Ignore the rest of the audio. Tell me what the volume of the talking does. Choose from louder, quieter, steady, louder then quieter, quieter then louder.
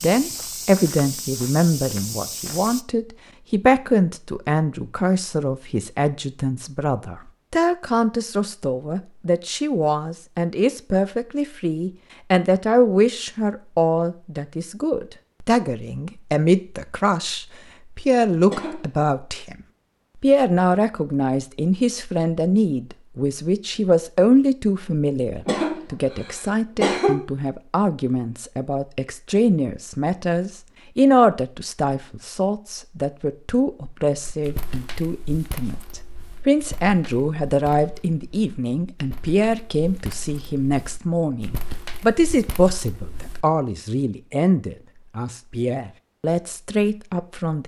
steady.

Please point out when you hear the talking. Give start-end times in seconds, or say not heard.
0.0-19.6, 20.2-47.6.